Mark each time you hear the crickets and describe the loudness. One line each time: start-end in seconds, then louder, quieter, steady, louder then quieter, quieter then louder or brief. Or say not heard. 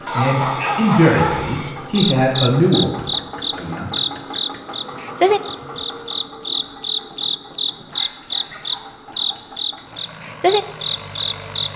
1.9-11.7 steady.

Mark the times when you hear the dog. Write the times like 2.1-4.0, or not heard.
0.1-1.7, 7.9-9.5.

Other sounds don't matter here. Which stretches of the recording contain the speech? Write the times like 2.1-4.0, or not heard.
0.1-4.0.